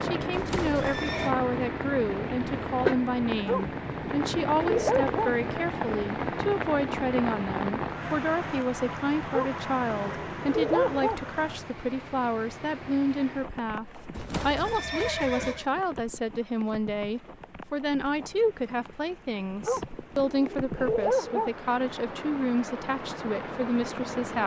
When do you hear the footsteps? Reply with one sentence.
The footsteps can't be heard in this clip.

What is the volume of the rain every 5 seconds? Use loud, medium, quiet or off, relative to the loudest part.
loud, loud, medium, quiet, medium.